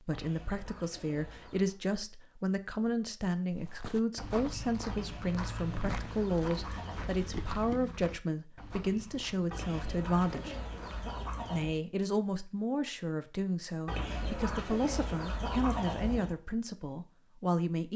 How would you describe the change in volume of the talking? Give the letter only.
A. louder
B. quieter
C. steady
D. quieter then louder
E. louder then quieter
C.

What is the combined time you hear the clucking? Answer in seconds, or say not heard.
9 s.